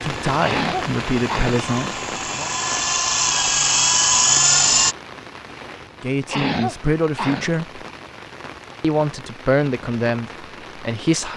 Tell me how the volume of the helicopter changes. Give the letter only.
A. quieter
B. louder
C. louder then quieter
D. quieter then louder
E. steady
B.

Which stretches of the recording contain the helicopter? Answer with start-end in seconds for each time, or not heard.
0.0-5.0.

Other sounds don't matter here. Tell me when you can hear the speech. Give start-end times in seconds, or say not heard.
0.0-2.5, 6.0-7.8, 8.8-11.3.